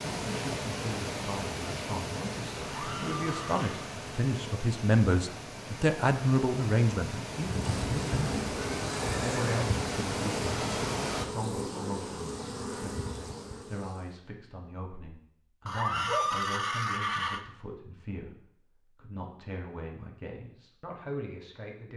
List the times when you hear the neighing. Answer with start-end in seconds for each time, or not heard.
2.6-3.9, 7.6-9.7, 15.7-17.4.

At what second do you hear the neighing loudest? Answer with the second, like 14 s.
16 s.